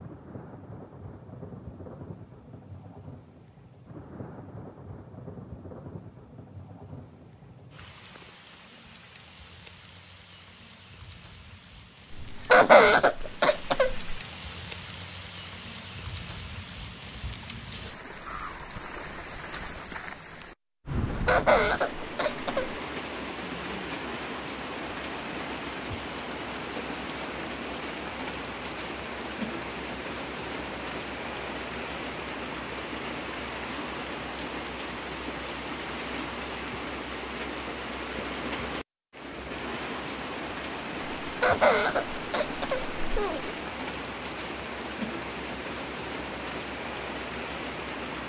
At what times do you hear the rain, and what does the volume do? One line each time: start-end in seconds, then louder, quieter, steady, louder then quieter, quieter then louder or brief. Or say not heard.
0.0-48.2 louder.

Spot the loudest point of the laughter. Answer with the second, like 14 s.
13 s.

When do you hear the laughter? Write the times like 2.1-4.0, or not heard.
12.1-14.2, 20.9-22.8, 41.2-43.5.